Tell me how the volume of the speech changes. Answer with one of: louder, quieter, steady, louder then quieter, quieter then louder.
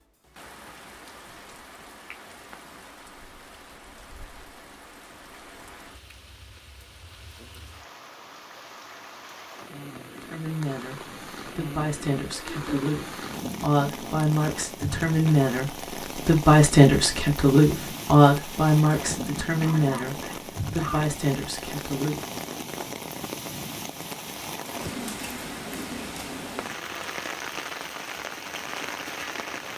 louder then quieter.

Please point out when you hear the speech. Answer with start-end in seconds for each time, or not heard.
10.2-22.2.